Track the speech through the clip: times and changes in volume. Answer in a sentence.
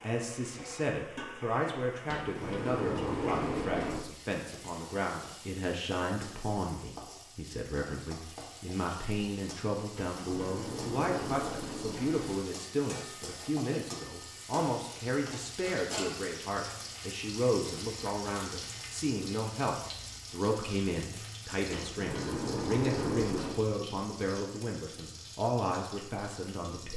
You can hear the speech from 0.0 to 26.9 s, at a steady volume.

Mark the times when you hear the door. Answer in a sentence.
You can hear the door from 2.0 to 4.0 s, from 9.9 to 12.4 s and from 21.7 to 23.6 s.